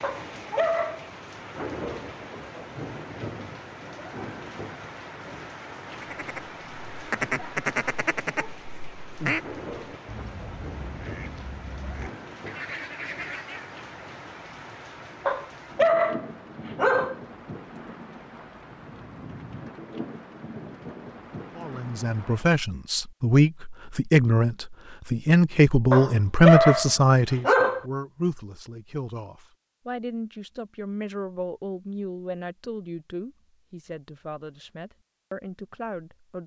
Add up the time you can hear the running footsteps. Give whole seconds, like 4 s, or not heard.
not heard.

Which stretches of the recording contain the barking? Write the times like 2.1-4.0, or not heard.
0.0-1.6, 15.2-17.1, 25.9-27.8.